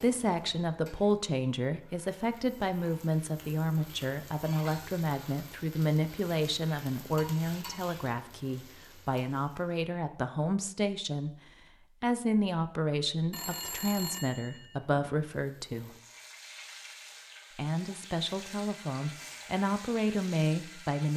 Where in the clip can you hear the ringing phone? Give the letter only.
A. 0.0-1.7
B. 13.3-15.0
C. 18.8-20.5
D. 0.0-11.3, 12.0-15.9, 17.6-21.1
B.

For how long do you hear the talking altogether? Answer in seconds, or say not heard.
19 s.